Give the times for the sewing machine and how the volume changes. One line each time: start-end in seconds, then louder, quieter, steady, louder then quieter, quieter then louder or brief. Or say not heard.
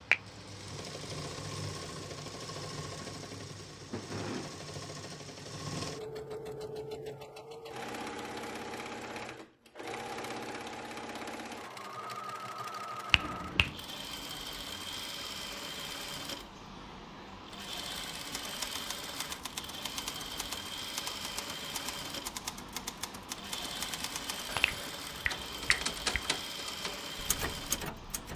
0.0-28.3 steady.